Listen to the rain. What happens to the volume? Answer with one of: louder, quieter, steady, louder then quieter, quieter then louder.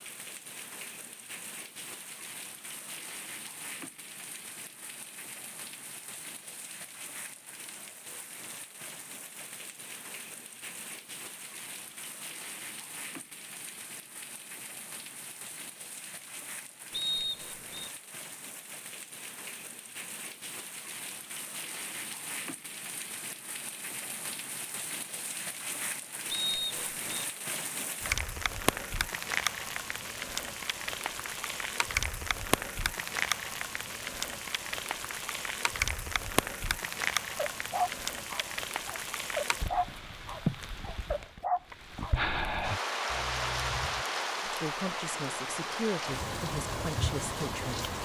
louder.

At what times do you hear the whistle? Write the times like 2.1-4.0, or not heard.
16.9-17.9, 26.3-27.2.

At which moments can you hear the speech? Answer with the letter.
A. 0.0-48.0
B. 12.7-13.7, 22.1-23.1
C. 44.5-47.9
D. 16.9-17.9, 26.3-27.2
C.